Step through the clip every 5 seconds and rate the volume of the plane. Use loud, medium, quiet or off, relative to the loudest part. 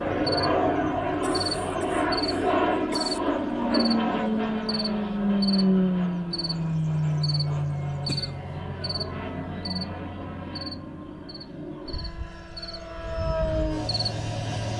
loud, loud, medium.